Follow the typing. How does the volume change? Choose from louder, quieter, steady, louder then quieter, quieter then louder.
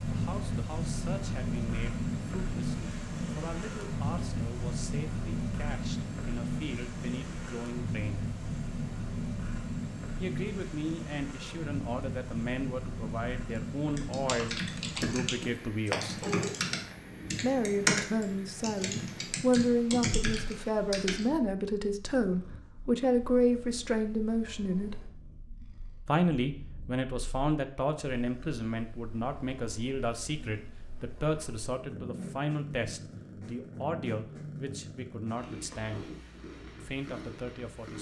louder then quieter.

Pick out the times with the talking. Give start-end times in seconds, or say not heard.
0.1-8.2, 10.2-16.2, 17.4-25.1, 26.1-36.1, 36.8-37.9.